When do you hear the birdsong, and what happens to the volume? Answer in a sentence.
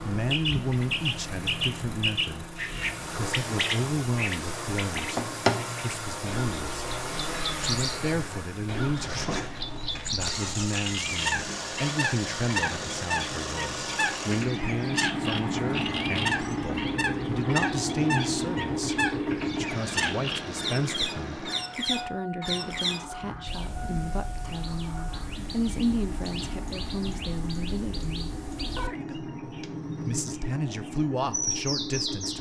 You can hear the birdsong from 0.3 to 32.3 s, getting quieter.